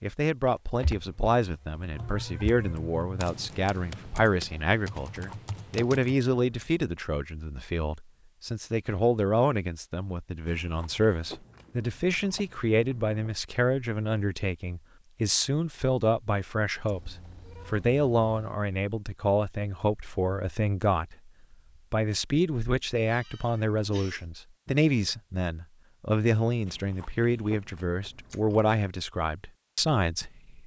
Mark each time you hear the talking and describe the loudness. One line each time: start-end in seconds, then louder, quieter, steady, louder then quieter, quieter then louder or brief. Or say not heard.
0.0-21.3 steady
21.9-30.6 steady.